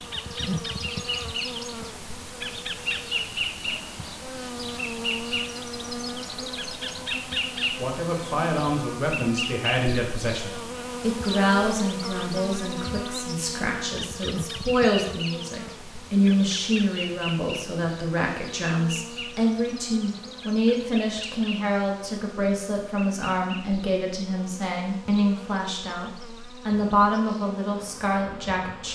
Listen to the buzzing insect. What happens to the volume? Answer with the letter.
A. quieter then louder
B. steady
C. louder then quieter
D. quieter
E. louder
D.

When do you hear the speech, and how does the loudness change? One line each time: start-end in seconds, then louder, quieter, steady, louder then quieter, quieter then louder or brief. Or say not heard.
7.8-28.9 steady.